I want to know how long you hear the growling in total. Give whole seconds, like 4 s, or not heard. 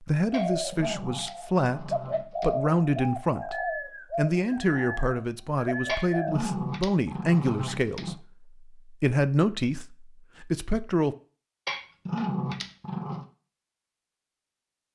6 s.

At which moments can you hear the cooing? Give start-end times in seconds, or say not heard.
0.3-6.4.